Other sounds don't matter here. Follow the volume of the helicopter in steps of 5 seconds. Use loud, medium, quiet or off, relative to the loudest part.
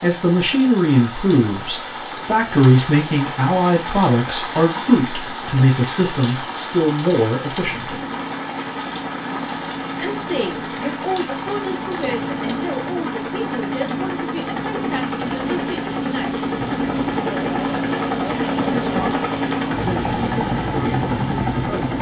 quiet, medium, medium, loud, loud.